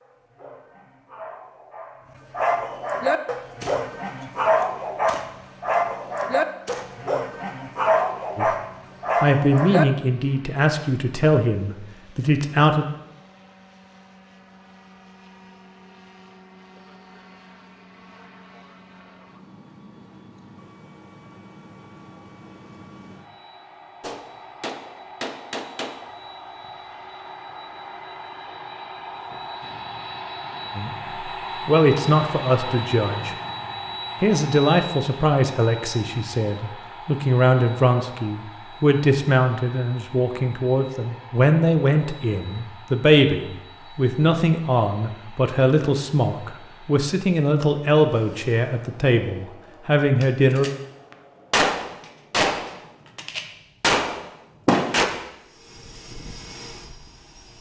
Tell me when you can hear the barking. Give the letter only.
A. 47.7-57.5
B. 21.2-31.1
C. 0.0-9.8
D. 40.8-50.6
C.